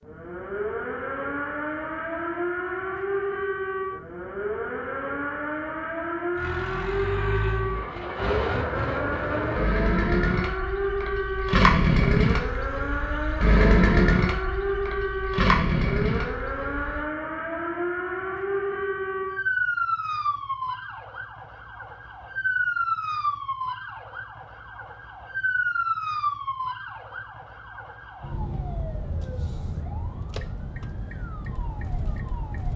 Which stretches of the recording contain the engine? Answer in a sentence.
You can hear the engine from 6.3 to 17.1 s.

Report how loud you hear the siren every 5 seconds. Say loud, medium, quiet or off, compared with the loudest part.
loud, loud, loud, loud, loud, loud, medium.